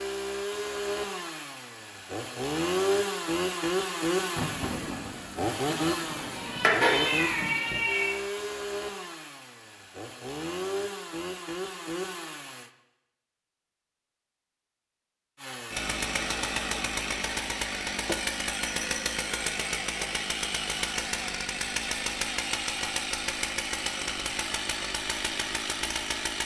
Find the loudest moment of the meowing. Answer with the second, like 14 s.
7 s.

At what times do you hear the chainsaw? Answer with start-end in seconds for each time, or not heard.
0.0-12.7, 15.4-26.4.